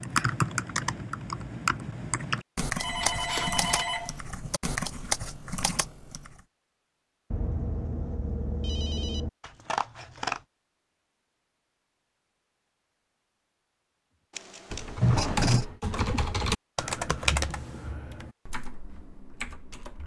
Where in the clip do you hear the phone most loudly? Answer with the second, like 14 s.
15 s.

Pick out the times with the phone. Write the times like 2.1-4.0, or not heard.
2.8-4.2, 7.3-9.3, 15.0-15.7.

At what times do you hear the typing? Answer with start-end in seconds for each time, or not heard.
0.0-6.3, 14.7-20.0.